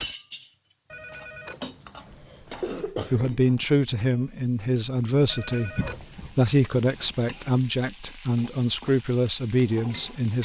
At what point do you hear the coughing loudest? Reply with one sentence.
The loudest moment of the coughing is at 3 seconds.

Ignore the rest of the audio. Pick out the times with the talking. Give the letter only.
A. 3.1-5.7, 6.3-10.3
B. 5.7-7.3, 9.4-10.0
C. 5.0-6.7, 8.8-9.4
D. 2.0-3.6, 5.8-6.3
A.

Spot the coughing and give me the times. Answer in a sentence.
You can hear the coughing from 2.0 to 3.6 s and from 5.8 to 6.3 s.